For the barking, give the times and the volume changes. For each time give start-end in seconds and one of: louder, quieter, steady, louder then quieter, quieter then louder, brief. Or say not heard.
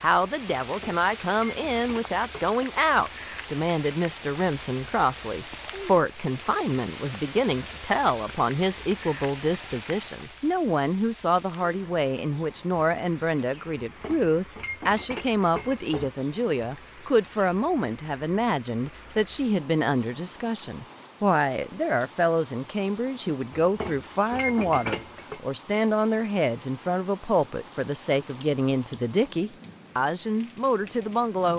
not heard.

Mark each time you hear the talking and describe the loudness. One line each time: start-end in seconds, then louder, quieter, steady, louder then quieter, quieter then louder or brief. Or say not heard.
0.0-31.5 steady.